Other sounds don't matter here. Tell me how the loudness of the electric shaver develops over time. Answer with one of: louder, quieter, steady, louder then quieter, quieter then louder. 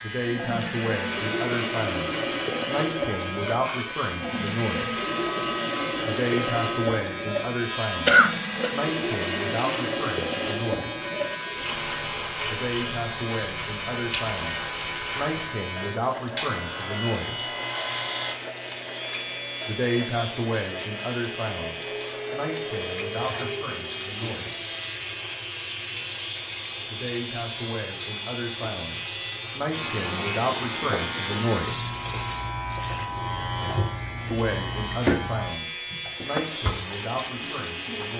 steady.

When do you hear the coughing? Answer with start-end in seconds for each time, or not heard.
8.1-8.7.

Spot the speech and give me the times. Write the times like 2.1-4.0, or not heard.
0.0-5.0, 6.0-11.1, 12.5-17.5, 19.6-24.7, 26.9-31.9, 34.3-38.1.